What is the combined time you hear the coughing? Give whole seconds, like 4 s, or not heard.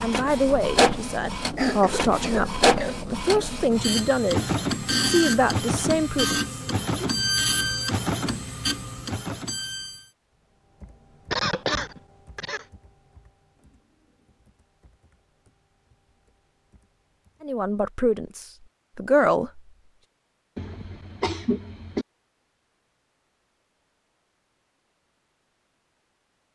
5 s.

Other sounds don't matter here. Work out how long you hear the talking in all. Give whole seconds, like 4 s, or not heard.
9 s.